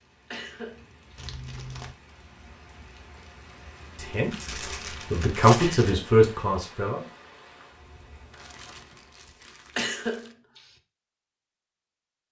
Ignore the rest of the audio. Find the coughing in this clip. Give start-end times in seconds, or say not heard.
0.3-1.1, 5.6-6.2, 9.8-10.7.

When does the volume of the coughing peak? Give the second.
10 s.